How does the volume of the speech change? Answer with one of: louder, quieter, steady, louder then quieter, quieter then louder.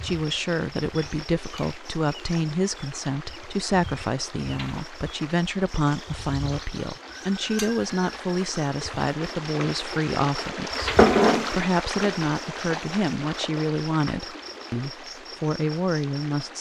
steady.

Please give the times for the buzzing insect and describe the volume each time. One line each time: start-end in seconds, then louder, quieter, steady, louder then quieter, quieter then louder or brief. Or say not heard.
0.0-16.5 louder then quieter.